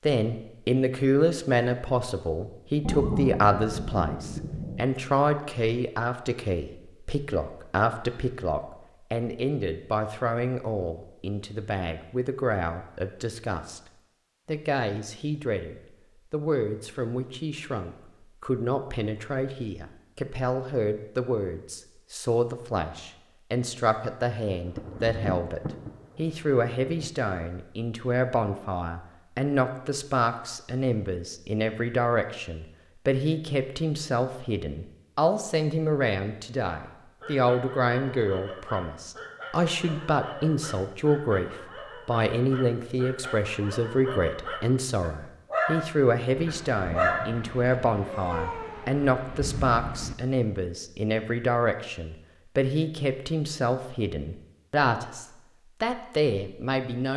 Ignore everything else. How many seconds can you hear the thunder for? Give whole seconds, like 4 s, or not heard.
8 s.